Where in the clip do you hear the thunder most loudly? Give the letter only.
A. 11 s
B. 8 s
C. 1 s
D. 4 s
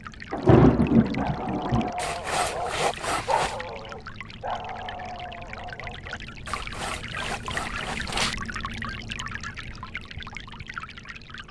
C.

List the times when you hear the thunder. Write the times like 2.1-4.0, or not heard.
0.3-1.9.